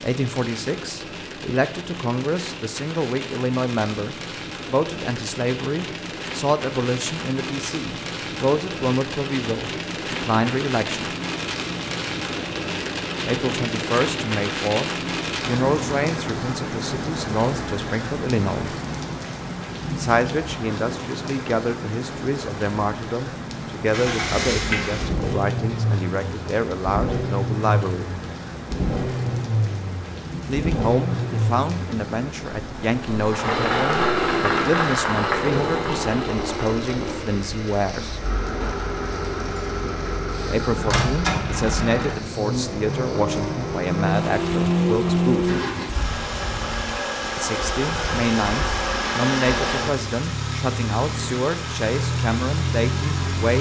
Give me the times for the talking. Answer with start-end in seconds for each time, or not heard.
0.0-11.1, 13.2-18.8, 19.9-28.1, 30.4-38.2, 40.5-45.5, 47.4-53.5.